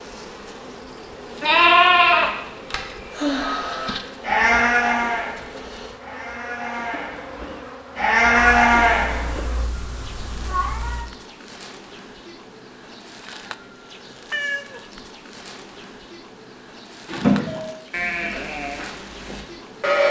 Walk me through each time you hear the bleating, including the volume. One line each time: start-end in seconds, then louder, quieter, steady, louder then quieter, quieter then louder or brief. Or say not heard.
1.4-9.4 quieter then louder
17.1-20.0 brief.